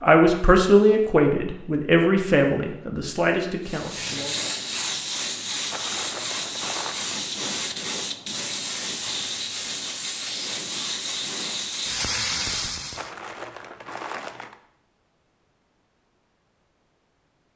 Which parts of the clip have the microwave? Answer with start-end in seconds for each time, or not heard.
not heard.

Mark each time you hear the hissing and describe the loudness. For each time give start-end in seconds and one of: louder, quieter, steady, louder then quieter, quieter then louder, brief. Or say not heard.
3.6-13.1 steady.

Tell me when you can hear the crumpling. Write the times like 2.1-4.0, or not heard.
5.7-7.0, 12.9-14.6.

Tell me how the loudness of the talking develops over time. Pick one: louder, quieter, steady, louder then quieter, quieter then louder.
quieter.